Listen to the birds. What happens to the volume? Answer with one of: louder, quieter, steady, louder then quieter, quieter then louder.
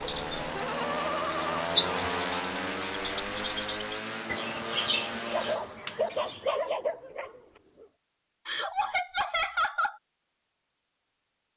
louder then quieter.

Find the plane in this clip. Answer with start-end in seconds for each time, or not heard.
0.0-5.6.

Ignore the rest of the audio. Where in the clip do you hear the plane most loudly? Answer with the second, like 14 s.
2 s.